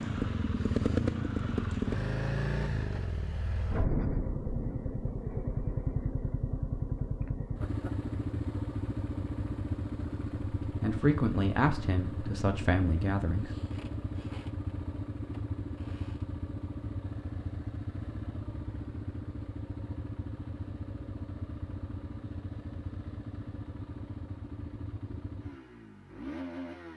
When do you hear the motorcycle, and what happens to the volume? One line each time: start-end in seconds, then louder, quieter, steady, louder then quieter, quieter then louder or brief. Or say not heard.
0.0-26.9 quieter.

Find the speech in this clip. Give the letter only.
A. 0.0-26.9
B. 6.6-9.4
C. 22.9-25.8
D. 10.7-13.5
D.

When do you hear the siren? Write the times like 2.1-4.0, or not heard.
not heard.